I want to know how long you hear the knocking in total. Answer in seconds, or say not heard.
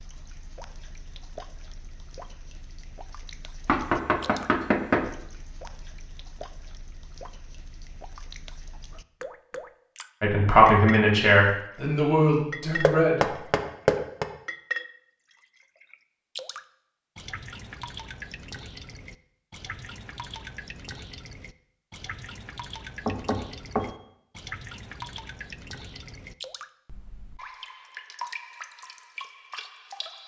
4 s.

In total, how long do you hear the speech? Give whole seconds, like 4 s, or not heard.
3 s.